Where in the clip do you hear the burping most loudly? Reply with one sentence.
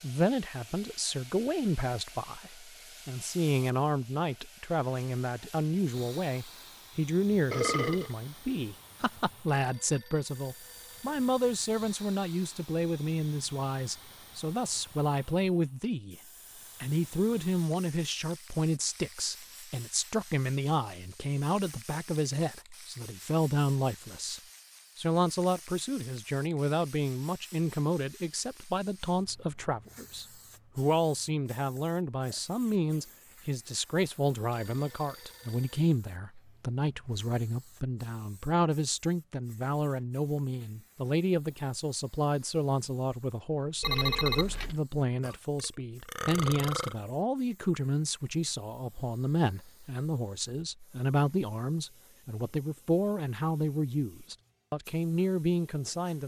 The volume of the burping peaks at 8 seconds.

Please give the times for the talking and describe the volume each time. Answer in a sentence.
You can hear the talking from 0.0 to 16.1 s, at a steady volume; and from 16.8 to 56.2 s, at a steady volume.